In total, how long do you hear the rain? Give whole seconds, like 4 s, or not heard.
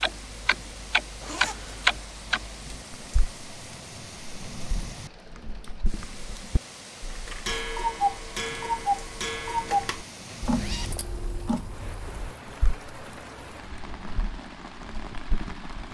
16 s.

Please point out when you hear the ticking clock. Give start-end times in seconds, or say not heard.
0.0-3.4, 4.2-12.8, 13.7-15.9.